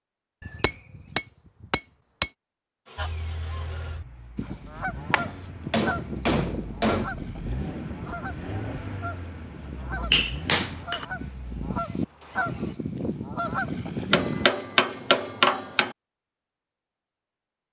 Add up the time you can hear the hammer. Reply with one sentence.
The hammer can be heard for 7 seconds in total.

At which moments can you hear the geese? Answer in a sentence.
You can hear the geese from 3.0 to 14.5 s.